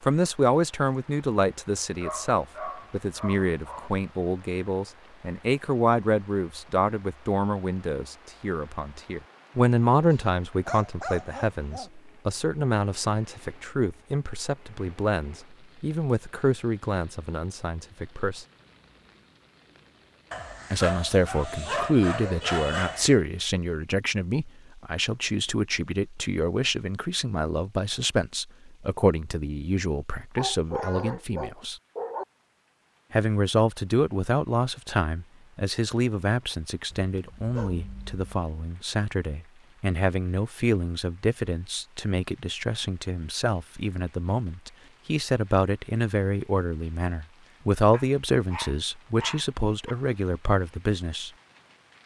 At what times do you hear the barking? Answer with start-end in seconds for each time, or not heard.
2.0-3.9, 10.7-11.9, 20.3-23.2, 30.4-32.2, 36.9-38.5, 47.9-50.0.